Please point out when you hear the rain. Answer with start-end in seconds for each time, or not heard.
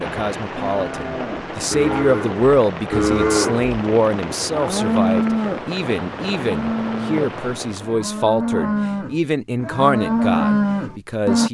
0.0-8.1.